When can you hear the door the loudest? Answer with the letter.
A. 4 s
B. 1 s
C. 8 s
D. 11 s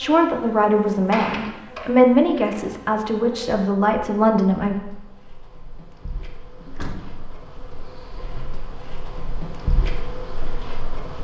B.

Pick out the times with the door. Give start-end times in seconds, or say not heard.
0.9-2.4, 6.5-7.2.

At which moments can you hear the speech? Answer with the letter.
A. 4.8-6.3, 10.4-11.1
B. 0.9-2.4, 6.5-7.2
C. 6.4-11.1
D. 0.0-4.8
D.